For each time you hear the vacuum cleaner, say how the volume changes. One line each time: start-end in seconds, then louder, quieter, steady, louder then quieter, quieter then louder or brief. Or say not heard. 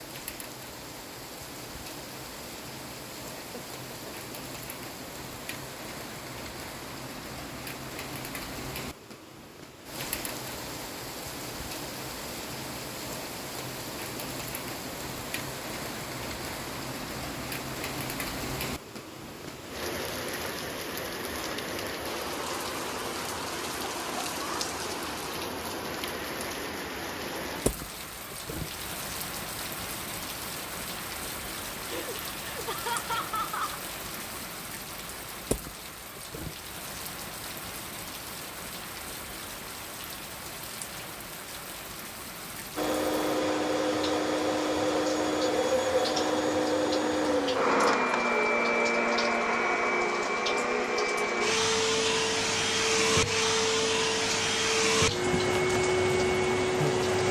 42.8-57.2 steady.